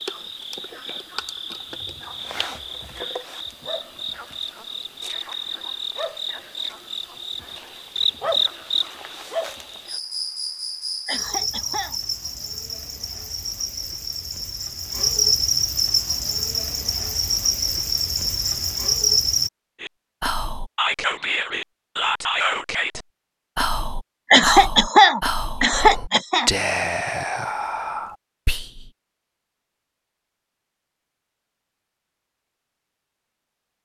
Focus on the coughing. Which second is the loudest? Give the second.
25 s.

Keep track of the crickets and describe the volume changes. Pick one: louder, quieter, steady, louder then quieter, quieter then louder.
louder.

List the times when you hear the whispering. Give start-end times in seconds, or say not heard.
19.8-28.9.